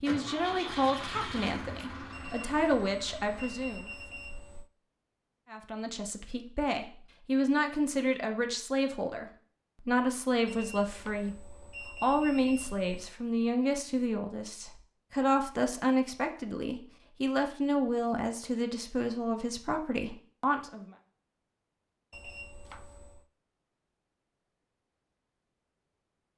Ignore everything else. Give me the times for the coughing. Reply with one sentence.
You can't hear the coughing here.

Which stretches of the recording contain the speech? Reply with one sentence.
The speech can be heard from 0.0 to 3.9 s and from 5.5 to 20.9 s.